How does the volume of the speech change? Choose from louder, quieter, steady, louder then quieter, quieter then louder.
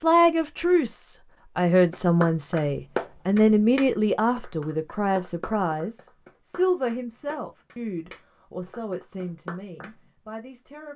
quieter.